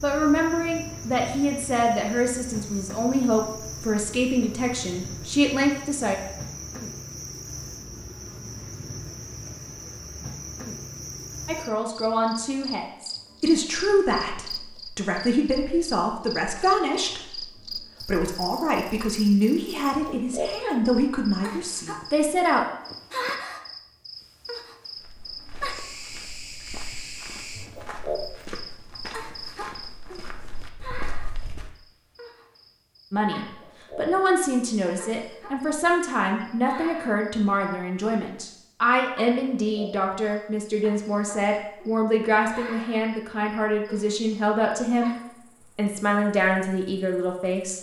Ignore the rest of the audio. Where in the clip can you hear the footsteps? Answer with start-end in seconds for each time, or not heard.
24.9-31.7.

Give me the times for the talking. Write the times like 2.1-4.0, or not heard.
0.0-6.2, 11.4-22.6, 33.1-45.1, 45.8-47.7.